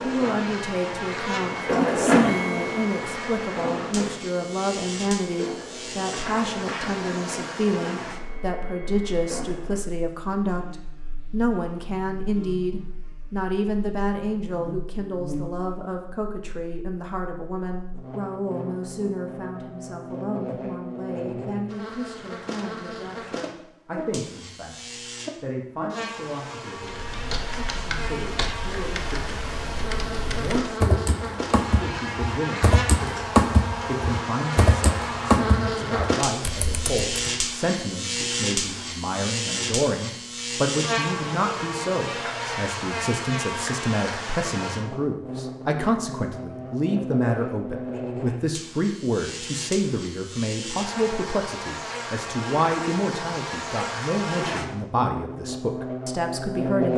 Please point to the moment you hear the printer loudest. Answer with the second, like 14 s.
2 s.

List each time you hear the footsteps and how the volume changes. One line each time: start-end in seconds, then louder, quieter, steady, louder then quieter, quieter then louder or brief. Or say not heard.
not heard.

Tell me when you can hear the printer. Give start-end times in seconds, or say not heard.
0.0-9.8.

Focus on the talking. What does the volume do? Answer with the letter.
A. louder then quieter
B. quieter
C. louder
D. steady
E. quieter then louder
E.